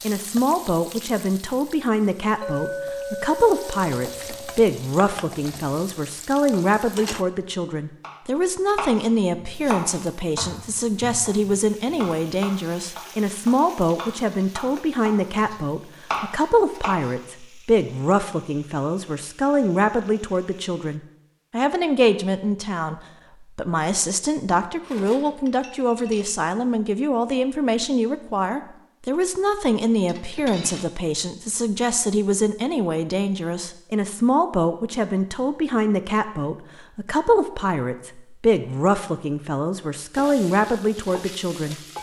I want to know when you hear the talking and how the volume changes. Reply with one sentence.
You can hear the talking from 0.0 to 41.8 s, at a steady volume.